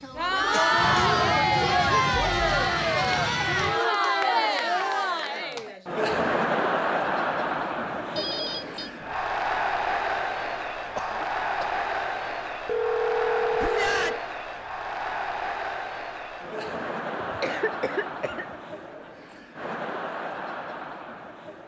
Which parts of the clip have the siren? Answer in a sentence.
The siren can't be heard in this clip.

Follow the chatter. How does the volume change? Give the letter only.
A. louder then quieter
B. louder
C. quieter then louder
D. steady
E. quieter
E.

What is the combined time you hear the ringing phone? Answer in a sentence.
The ringing phone can be heard for 2 seconds in total.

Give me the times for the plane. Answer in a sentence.
You can hear the plane from 0.0 to 3.8 s.